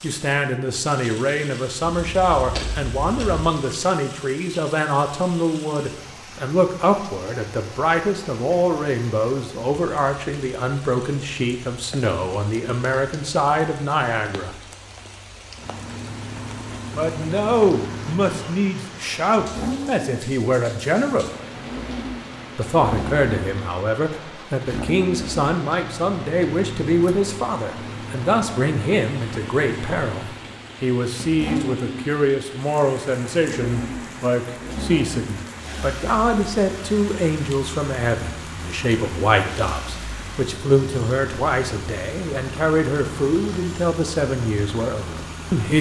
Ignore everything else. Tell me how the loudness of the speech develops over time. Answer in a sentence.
The volume of the speech stays about the same.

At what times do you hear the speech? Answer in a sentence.
The speech can be heard from 0.0 to 14.6 s, from 16.9 to 21.3 s and from 22.6 to 45.7 s.